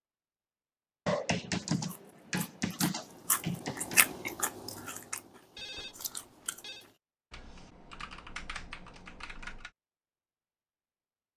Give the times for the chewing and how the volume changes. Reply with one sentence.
You can hear the chewing from 1.7 to 7.0 s, getting louder then quieter.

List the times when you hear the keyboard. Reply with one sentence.
You can hear the keyboard from 1.1 to 4.0 s and from 7.3 to 9.7 s.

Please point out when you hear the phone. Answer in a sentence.
The phone can be heard from 5.5 to 6.8 s.